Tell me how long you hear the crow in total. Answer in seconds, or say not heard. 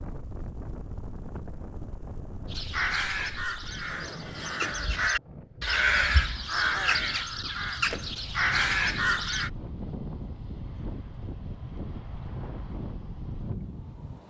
7 s.